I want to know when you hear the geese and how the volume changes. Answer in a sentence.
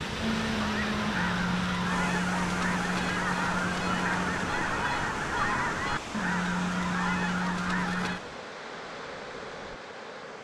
You can hear the geese from 0.1 to 8.2 s, at a steady volume.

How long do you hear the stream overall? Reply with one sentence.
You can hear the stream for 10 seconds altogether.